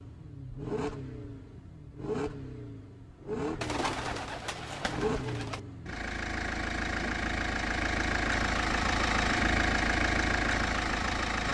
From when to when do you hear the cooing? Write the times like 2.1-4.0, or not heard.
3.6-5.6.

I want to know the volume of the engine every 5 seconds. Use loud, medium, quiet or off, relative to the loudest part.
medium, loud, loud.